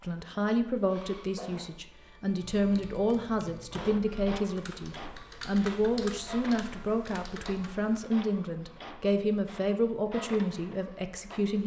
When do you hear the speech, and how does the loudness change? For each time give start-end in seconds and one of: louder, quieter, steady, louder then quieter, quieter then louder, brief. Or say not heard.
0.0-11.6 steady.